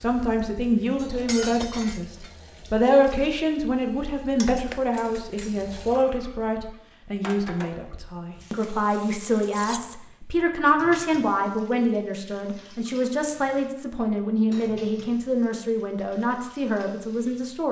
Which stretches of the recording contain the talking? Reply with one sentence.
The talking can be heard from 0.0 to 17.6 s.